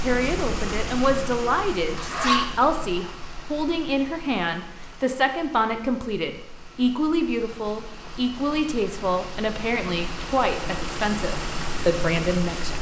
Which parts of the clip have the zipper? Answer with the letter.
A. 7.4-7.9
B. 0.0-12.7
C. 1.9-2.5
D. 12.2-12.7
C.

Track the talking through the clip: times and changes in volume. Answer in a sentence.
The talking can be heard from 0.0 to 12.7 s, at a steady volume.